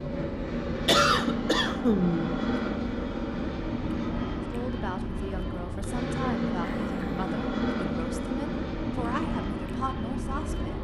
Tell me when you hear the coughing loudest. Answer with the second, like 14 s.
1 s.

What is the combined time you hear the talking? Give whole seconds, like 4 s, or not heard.
6 s.